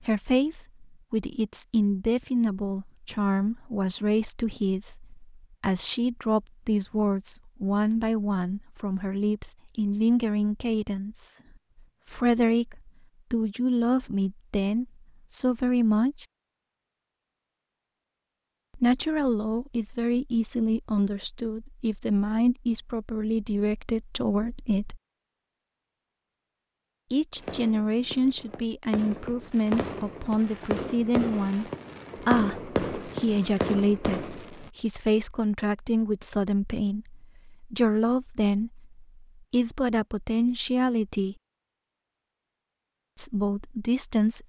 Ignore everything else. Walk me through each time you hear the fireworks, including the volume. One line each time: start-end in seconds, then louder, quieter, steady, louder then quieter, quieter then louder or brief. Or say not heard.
27.4-34.7 louder.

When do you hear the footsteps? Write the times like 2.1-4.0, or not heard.
not heard.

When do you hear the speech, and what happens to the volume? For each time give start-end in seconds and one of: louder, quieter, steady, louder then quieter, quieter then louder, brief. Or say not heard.
0.0-11.4 steady
12.1-16.2 steady
18.8-25.0 steady
27.1-41.4 steady
43.1-44.4 brief.